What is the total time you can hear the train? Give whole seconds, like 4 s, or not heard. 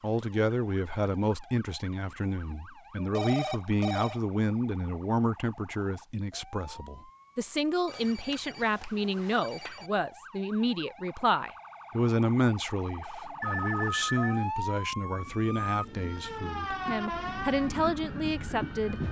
4 s.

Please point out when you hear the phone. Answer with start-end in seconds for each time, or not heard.
3.0-4.2, 7.8-9.9, 13.4-14.4.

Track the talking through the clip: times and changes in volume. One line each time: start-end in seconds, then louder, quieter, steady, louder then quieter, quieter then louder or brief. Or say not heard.
0.0-19.0 steady.